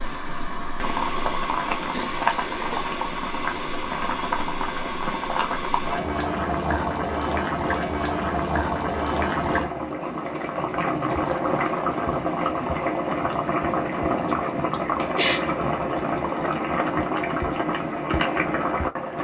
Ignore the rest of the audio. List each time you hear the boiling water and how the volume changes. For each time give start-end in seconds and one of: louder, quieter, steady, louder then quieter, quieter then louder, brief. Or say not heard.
0.0-19.2 steady.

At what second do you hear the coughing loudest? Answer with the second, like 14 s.
15 s.